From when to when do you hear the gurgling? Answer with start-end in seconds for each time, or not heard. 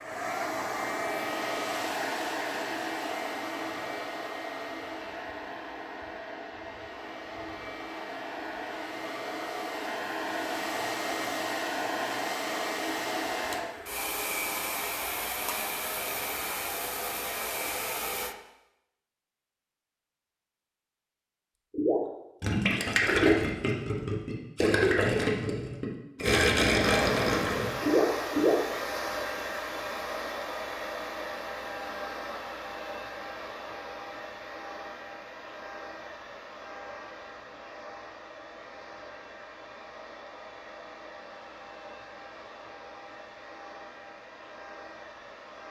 21.7-28.6.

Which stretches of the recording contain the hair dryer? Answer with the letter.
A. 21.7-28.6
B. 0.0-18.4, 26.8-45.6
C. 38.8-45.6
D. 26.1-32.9
B.